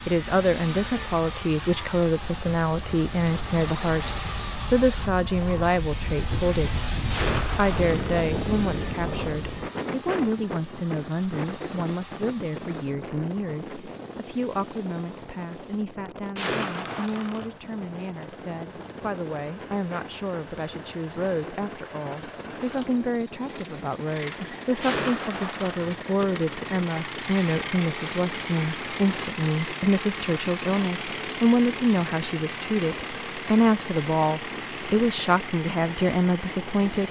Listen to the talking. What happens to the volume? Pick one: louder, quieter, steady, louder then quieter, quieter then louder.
quieter then louder.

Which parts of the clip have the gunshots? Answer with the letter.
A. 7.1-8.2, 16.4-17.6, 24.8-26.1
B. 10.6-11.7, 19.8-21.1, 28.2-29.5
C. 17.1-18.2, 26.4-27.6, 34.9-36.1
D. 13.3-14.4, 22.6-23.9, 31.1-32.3
A.